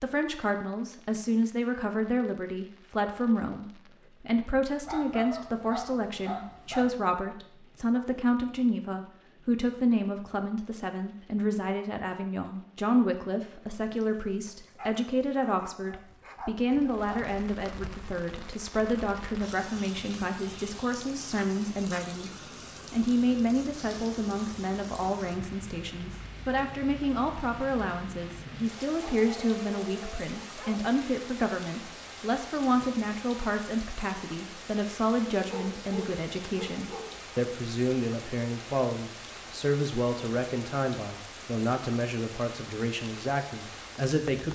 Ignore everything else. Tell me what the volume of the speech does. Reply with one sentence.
The loudness of the speech stays about the same.